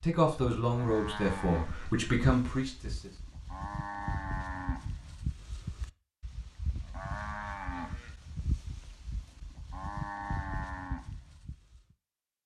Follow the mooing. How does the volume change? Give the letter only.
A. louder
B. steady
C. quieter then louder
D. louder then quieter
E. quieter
B.